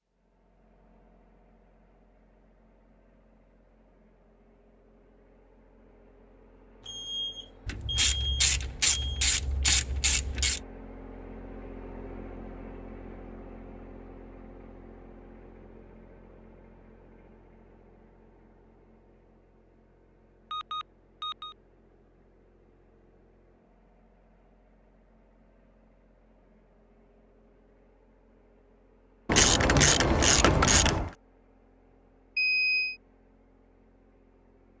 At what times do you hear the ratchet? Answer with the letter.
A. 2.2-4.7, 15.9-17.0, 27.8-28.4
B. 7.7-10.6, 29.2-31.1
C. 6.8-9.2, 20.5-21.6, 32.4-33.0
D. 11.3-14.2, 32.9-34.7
B.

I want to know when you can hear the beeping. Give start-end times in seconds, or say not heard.
6.8-9.2, 20.5-21.6, 32.4-33.0.